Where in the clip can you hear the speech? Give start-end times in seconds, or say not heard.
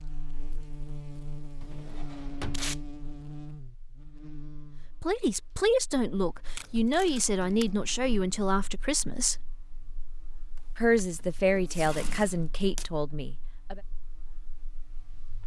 5.0-9.3, 10.8-13.8.